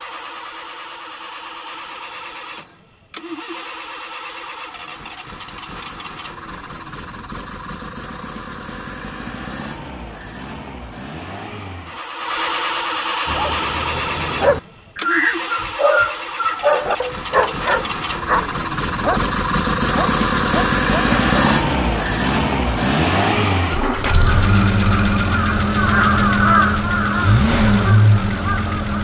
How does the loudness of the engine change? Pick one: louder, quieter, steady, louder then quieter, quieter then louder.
louder.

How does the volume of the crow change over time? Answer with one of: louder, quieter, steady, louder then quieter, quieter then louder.
louder then quieter.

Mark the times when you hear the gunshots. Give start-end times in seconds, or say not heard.
not heard.